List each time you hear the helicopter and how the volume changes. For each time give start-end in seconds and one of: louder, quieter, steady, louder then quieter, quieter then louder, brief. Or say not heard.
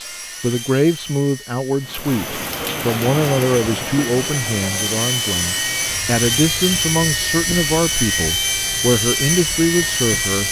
0.0-10.4 louder.